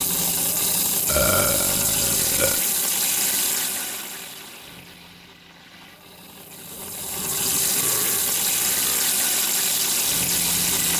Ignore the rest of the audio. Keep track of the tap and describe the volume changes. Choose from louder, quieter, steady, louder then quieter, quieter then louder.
quieter then louder.